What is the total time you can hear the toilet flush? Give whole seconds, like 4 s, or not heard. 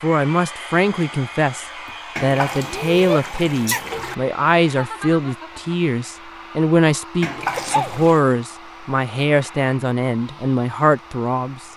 3 s.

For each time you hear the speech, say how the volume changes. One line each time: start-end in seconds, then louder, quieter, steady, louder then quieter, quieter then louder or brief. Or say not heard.
0.0-11.6 steady.